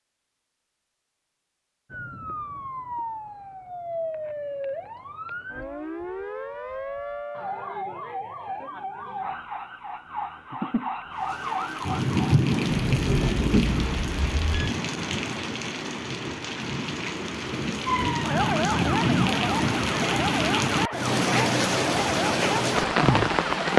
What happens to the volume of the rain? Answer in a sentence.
The volume of the rain goes down, then up.